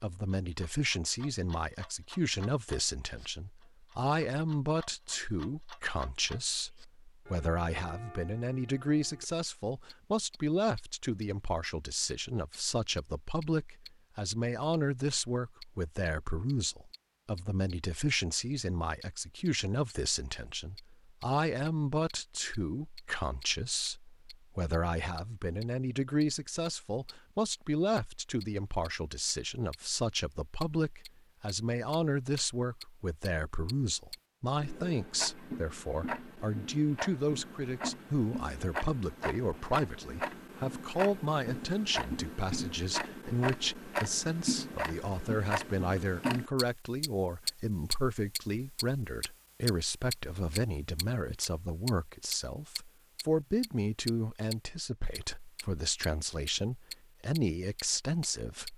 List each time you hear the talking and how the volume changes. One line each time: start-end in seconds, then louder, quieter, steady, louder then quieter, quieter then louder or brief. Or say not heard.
0.0-58.7 steady.